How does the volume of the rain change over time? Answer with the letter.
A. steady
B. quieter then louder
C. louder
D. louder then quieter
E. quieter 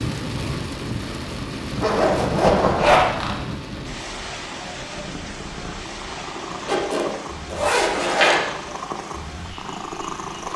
E.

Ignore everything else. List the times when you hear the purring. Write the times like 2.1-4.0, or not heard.
4.8-10.5.